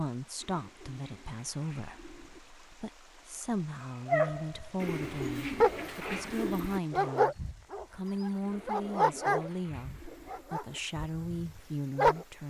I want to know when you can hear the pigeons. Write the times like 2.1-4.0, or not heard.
0.4-2.4, 4.8-6.8, 8.4-10.4.